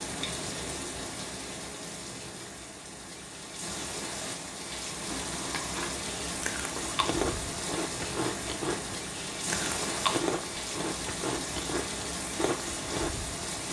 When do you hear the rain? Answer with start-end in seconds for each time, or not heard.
0.0-13.6.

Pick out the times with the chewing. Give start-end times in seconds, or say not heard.
5.0-13.2.